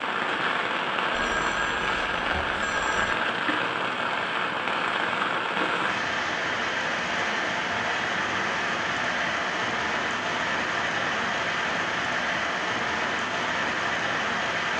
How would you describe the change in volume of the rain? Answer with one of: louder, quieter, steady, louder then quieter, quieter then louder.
steady.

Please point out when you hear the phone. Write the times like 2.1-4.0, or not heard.
1.1-3.1.